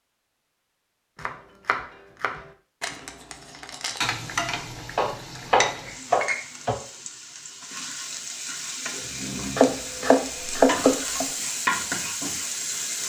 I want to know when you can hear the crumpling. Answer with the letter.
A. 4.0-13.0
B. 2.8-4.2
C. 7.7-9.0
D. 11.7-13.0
B.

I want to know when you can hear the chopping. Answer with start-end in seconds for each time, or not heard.
1.2-2.4, 5.0-6.8, 9.6-11.3.